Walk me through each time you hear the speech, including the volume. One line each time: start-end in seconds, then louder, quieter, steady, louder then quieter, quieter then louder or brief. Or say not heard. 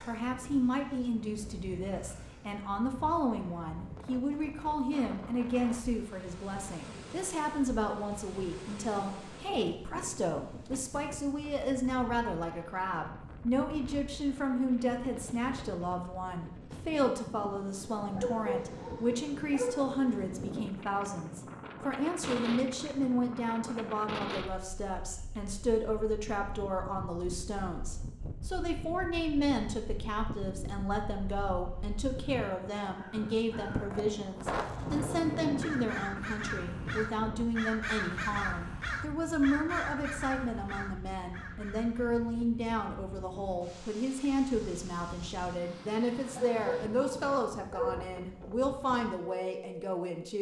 0.0-50.3 steady.